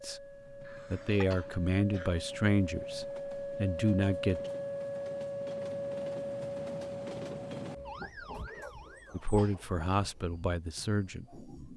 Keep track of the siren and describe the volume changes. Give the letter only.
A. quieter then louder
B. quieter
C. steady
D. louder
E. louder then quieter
E.